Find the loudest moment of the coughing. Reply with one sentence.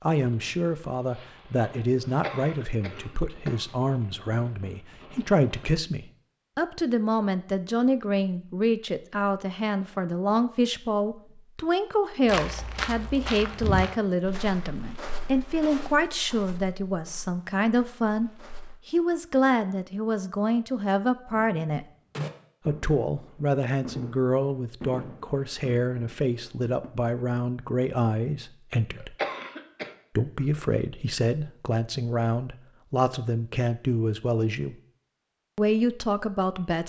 The loudest moment of the coughing is at 29 seconds.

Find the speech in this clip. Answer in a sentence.
You can hear the speech from 0.0 to 21.9 s, from 22.6 to 29.1 s, from 30.1 to 34.8 s and from 35.5 to 36.8 s.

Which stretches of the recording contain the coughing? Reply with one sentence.
The coughing can be heard from 2.0 to 3.6 s and from 28.9 to 29.9 s.